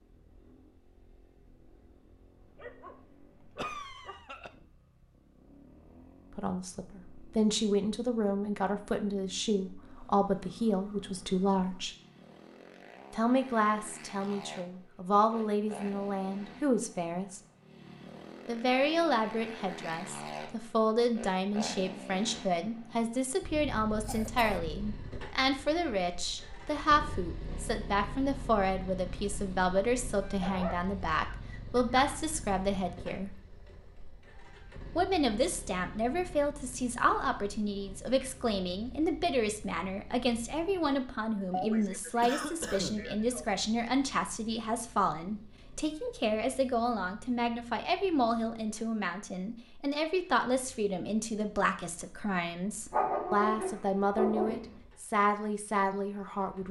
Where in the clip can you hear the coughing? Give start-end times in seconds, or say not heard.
3.5-4.5, 24.0-24.6, 41.5-43.5.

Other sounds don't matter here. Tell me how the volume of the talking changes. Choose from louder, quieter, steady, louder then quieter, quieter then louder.
steady.